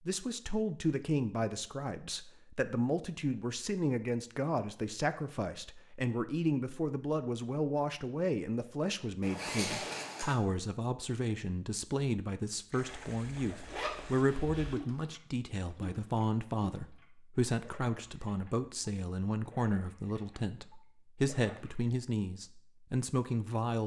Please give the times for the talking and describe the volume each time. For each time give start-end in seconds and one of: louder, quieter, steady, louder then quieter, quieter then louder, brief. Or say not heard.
0.0-23.8 steady.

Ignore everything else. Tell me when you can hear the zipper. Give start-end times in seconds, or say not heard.
9.2-10.3, 12.8-14.8.